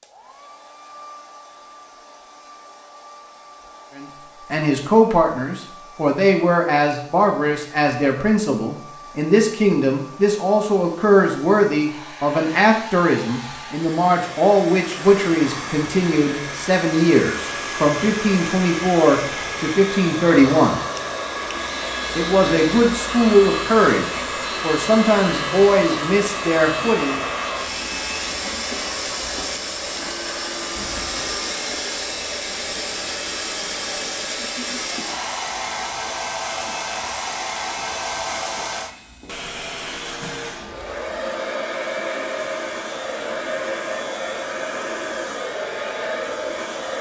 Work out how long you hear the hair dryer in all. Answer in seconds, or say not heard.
47 s.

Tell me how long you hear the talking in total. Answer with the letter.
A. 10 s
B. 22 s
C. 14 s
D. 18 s
B.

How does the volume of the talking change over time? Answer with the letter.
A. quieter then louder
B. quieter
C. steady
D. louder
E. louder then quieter
C.